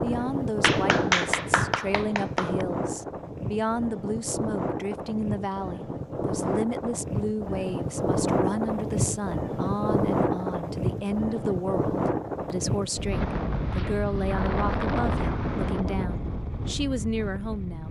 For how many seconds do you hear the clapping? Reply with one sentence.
You can hear the clapping for 2 seconds altogether.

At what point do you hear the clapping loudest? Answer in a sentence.
The loudest moment of the clapping is at 1 second.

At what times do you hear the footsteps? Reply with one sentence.
The footsteps can't be heard in this clip.